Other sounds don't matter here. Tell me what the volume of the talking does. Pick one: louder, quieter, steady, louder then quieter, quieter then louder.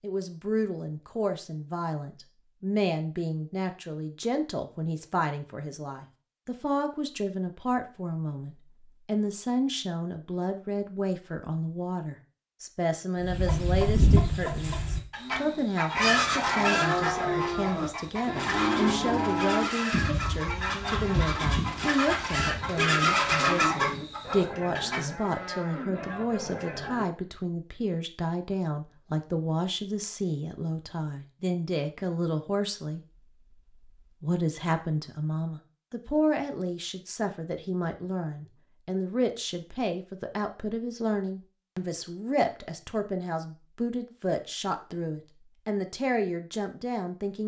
steady.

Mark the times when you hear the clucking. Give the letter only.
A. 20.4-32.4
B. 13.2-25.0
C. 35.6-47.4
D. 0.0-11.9
B.